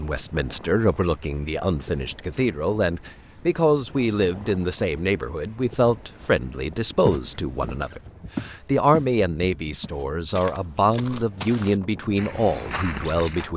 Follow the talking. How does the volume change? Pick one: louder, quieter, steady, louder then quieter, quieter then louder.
steady.